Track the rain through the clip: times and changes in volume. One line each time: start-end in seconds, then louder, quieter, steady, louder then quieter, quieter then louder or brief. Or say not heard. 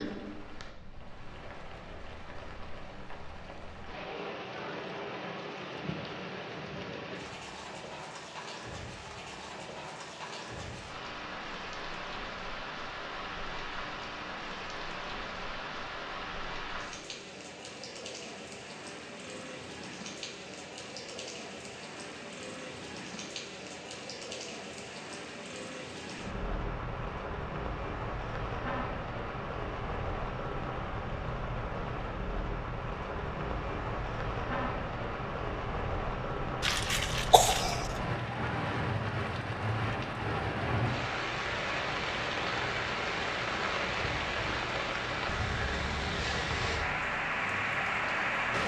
0.0-48.6 louder.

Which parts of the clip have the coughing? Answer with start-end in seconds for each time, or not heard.
36.6-37.9.